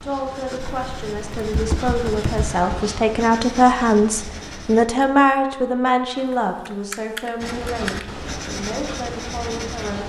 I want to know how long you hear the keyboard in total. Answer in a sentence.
The keyboard can be heard for 4 seconds in total.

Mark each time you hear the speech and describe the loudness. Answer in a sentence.
You can hear the speech from 0.0 to 10.0 s, getting louder then quieter.